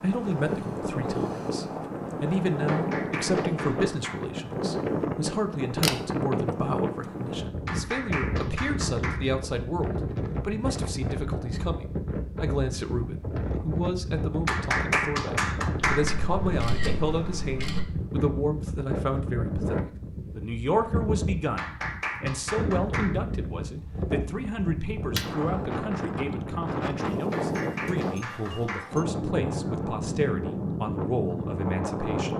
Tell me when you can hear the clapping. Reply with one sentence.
You can hear the clapping from 2.6 to 4.2 s, from 7.7 to 9.3 s, from 14.4 to 16.2 s, from 21.6 to 23.1 s and from 27.3 to 28.9 s.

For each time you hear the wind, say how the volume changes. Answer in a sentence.
You can hear the wind from 0.0 to 32.3 s, at a steady volume.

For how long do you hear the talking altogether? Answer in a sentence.
The talking can be heard for 32 seconds in total.